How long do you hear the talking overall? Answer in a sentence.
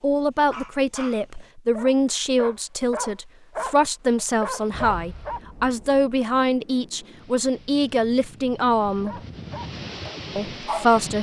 You can hear the talking for 10 seconds altogether.